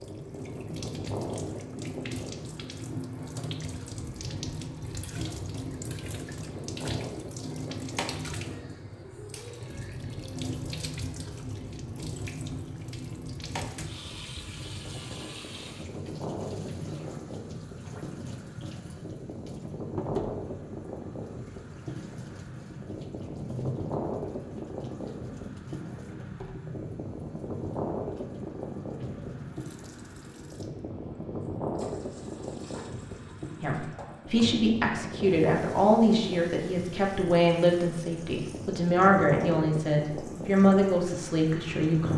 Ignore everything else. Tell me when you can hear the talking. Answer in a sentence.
You can hear the talking from 33.6 to 42.1 s.